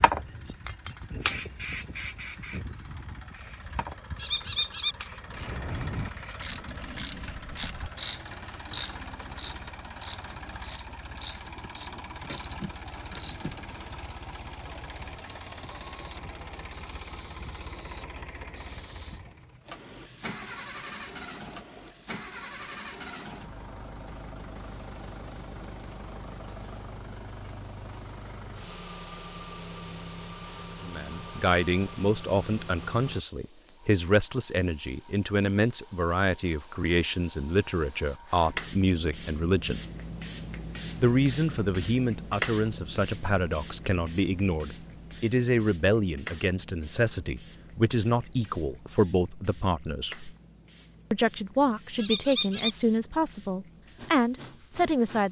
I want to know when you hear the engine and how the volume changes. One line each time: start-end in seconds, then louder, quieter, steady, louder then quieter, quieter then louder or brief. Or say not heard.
0.0-33.2 steady.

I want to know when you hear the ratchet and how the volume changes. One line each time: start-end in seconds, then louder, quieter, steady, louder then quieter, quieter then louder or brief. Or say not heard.
5.2-13.8 quieter.